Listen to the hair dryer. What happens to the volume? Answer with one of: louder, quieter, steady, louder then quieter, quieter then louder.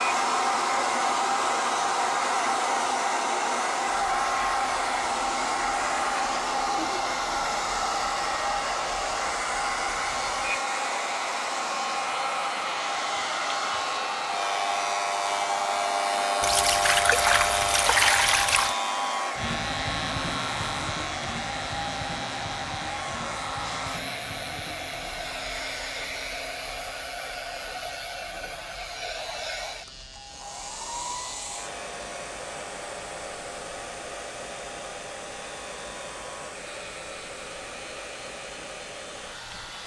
quieter.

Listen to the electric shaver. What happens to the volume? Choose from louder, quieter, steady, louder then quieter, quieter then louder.
louder then quieter.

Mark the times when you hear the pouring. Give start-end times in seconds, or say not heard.
16.4-18.8.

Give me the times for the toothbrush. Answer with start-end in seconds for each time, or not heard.
not heard.